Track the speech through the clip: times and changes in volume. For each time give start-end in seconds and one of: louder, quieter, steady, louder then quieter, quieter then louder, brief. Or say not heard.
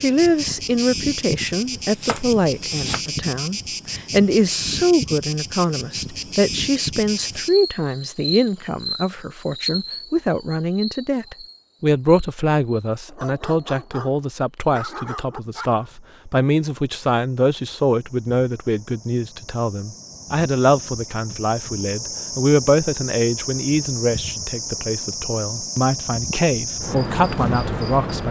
0.0-28.2 steady.